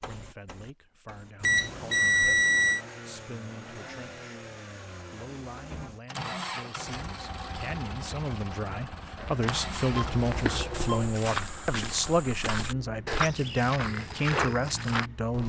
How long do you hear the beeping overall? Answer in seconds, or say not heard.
3 s.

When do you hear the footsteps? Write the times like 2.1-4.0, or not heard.
9.2-15.4.